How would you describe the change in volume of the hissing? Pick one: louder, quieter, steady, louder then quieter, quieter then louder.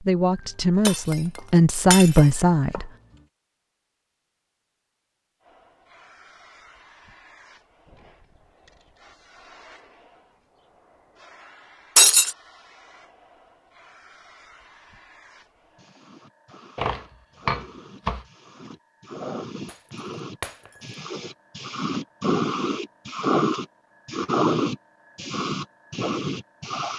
louder.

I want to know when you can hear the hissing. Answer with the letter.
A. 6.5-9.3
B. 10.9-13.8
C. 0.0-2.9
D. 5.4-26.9
D.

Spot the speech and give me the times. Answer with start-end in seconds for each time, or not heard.
0.0-2.9.